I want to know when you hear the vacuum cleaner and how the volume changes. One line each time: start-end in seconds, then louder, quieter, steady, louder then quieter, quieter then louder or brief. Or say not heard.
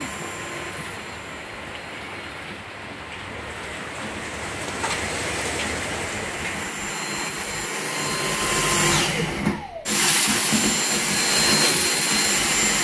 0.0-12.7 louder.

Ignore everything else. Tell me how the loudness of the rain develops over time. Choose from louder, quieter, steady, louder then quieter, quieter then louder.
louder.